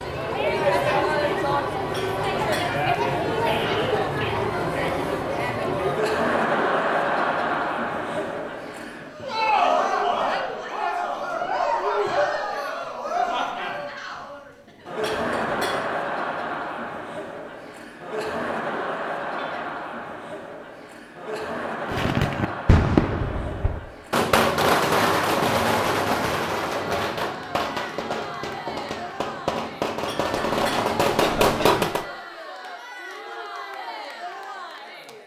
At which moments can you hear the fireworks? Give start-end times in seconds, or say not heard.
21.9-32.0.